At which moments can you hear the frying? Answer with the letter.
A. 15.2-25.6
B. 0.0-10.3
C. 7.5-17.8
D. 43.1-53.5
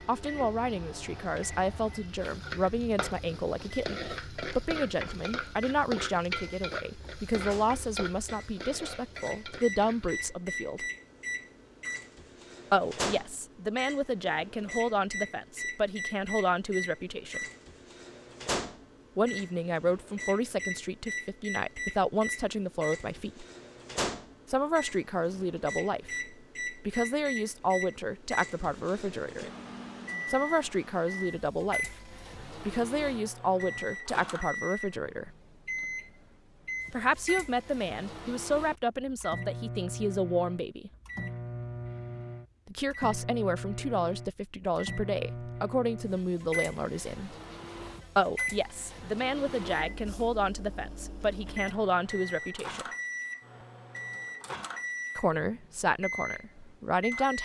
B.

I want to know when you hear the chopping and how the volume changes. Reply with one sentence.
You can't hear the chopping here.